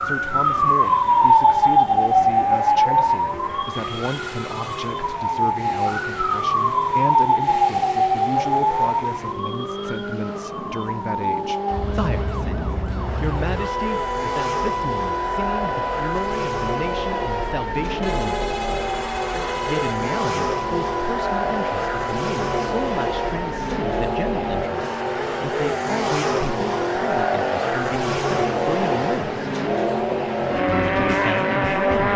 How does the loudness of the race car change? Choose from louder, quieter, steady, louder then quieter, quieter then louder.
louder.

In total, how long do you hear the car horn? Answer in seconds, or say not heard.
3 s.